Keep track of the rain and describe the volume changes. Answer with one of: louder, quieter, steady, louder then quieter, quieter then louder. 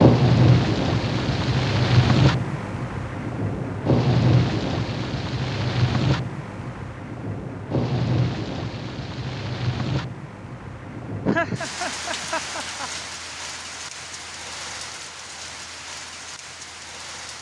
quieter.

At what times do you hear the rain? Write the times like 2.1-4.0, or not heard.
0.0-17.3.